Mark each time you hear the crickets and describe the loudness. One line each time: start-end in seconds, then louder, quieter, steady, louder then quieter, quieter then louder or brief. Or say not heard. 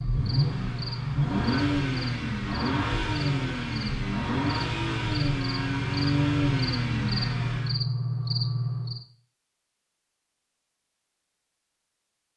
0.0-9.1 louder.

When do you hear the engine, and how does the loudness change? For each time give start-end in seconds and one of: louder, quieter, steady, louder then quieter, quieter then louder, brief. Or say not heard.
0.0-7.8 steady.